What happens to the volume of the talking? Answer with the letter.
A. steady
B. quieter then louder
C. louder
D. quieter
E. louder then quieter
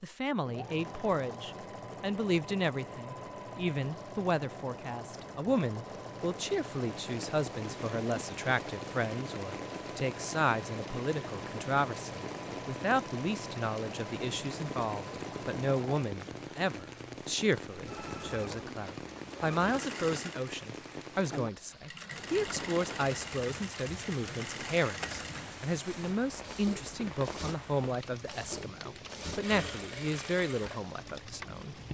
A.